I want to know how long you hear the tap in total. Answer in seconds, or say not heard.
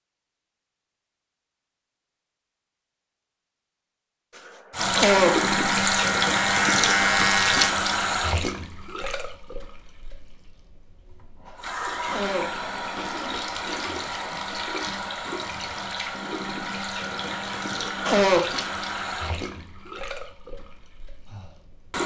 17 s.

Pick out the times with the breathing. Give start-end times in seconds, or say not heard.
20.5-21.7.